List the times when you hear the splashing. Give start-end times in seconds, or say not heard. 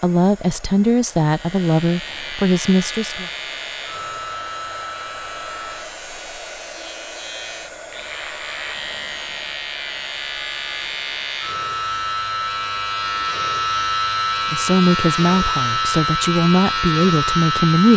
not heard.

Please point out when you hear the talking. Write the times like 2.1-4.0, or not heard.
0.0-3.3, 14.5-17.9.